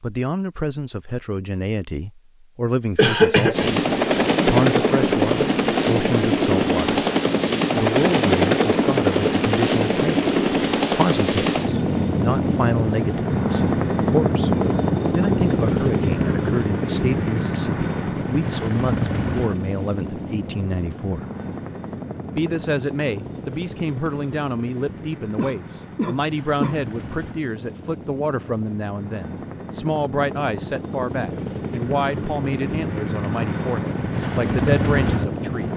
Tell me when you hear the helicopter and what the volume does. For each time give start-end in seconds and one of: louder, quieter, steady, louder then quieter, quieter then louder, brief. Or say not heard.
3.5-35.7 quieter then louder.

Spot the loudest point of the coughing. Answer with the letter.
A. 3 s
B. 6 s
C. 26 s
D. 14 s
A.